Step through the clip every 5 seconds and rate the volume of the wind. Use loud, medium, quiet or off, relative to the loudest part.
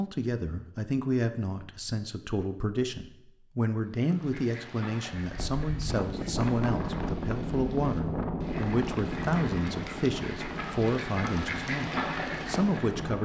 off, loud, medium.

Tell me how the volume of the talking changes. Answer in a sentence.
The volume of the talking stays about the same.